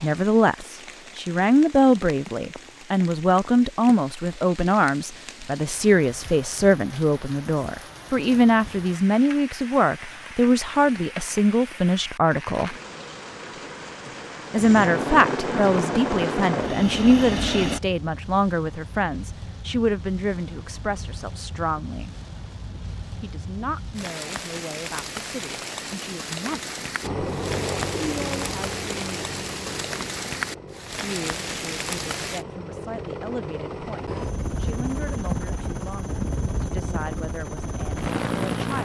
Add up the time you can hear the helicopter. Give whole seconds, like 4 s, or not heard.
15 s.